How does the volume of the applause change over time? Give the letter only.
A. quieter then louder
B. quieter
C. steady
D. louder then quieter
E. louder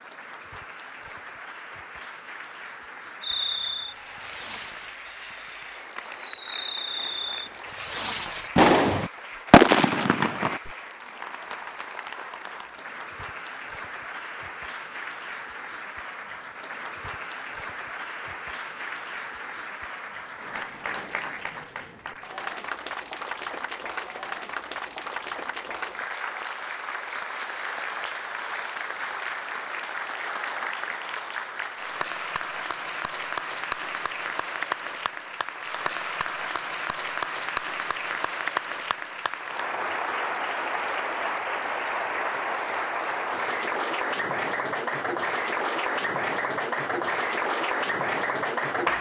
E.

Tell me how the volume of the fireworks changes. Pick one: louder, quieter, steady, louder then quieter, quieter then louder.
louder.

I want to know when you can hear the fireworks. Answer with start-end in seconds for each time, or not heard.
3.2-10.7.